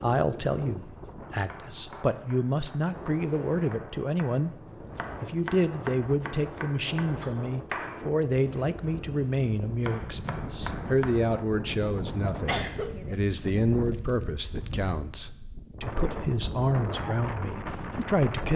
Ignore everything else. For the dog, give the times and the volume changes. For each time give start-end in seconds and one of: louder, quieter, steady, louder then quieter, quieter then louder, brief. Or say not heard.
not heard.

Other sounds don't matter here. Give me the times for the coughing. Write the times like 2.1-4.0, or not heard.
12.2-13.2.